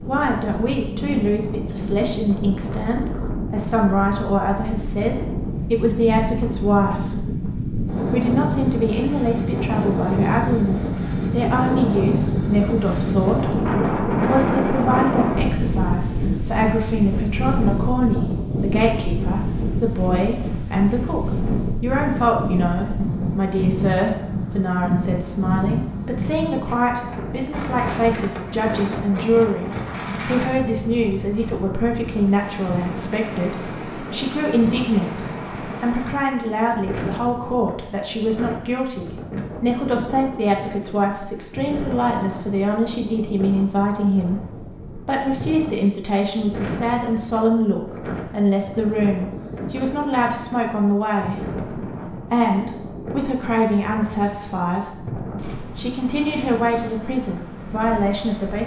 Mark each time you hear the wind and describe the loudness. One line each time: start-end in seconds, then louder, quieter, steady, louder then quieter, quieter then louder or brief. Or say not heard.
0.0-58.6 quieter.